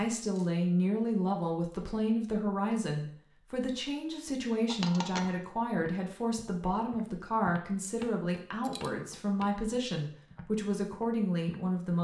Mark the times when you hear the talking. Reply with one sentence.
The talking can be heard from 0.0 to 12.0 s.